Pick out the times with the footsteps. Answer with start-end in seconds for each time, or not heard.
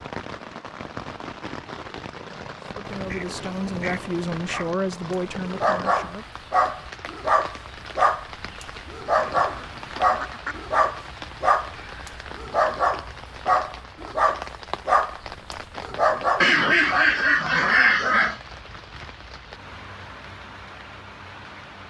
not heard.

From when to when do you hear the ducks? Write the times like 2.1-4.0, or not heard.
2.9-4.8, 9.2-10.8, 16.4-18.4.